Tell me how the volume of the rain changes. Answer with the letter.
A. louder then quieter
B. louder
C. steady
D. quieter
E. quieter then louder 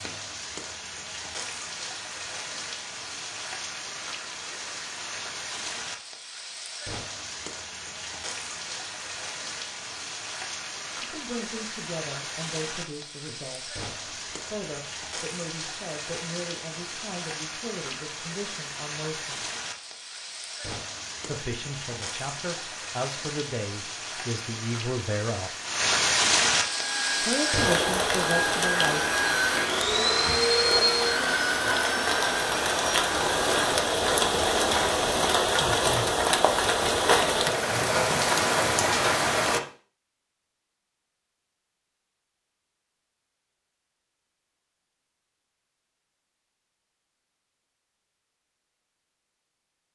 B.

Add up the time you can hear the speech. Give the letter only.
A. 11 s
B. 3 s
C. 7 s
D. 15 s
D.